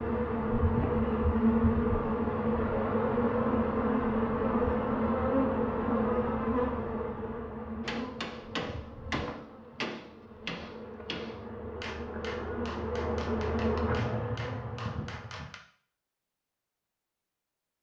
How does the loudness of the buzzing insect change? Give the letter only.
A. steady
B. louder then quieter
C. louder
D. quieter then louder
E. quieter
D.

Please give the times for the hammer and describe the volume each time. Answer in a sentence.
You can hear the hammer from 7.8 to 15.6 s, getting quieter.